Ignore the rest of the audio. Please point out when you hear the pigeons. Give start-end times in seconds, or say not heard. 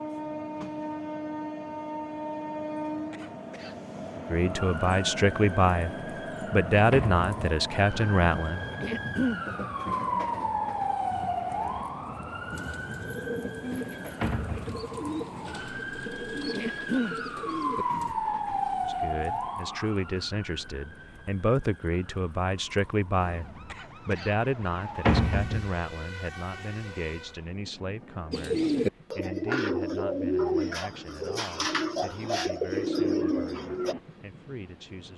12.5-18.1, 28.3-34.0.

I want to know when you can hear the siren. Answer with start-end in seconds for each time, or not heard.
4.4-27.4.